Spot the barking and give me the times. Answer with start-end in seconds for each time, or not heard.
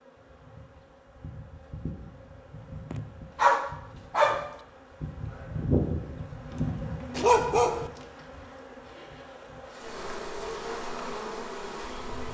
2.9-4.5, 7.2-7.9.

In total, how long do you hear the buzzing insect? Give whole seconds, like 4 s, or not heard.
12 s.